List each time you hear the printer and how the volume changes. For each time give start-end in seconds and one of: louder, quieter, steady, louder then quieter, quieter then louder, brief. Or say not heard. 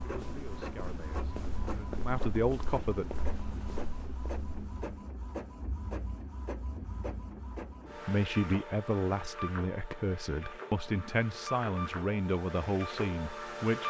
0.0-13.8 steady.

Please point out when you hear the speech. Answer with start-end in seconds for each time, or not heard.
0.0-3.0, 8.0-13.8.